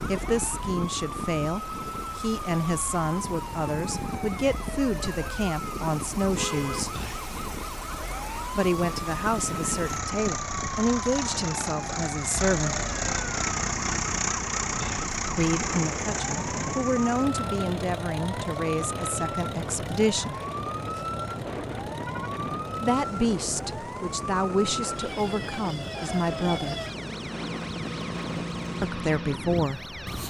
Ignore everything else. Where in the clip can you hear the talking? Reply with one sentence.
The talking can be heard from 0.1 to 7.0 s, from 8.6 to 12.8 s, from 15.3 to 20.4 s, from 22.8 to 26.8 s and from 28.8 to 29.9 s.